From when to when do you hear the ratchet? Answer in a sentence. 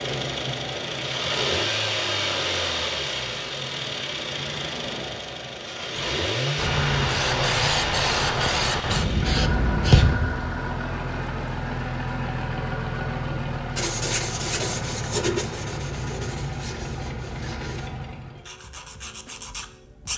You can't hear the ratchet here.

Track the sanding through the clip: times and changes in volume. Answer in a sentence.
The sanding can be heard from 13.8 to 20.1 s, getting quieter.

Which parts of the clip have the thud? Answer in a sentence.
You can hear the thud from 9.9 to 10.4 s.